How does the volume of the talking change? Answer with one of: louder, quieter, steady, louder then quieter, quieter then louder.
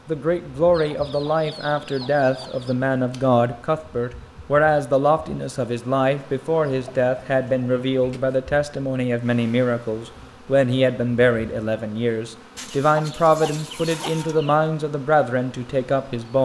steady.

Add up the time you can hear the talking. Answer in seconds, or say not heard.
16 s.